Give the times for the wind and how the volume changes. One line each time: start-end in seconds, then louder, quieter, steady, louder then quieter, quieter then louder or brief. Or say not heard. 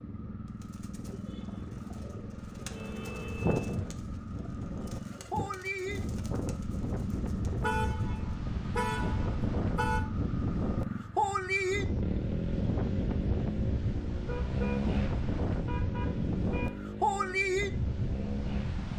0.0-18.9 louder.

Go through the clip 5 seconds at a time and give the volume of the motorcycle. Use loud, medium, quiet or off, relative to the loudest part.
medium, medium, loud, loud.